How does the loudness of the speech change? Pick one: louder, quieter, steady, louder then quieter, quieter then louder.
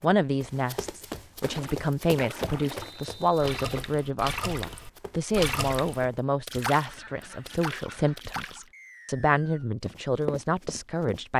steady.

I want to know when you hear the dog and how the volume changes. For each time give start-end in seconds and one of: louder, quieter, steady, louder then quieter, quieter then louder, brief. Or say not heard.
not heard.